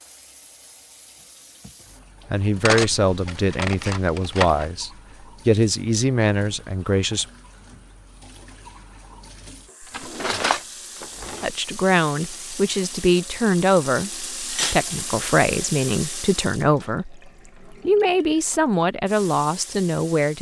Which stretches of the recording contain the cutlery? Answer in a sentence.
The cutlery can be heard from 2.6 to 4.7 s, from 9.9 to 11.4 s and from 14.4 to 14.8 s.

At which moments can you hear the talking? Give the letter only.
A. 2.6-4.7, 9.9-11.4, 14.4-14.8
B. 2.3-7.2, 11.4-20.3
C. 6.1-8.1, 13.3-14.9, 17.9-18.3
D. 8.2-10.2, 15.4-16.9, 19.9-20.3
B.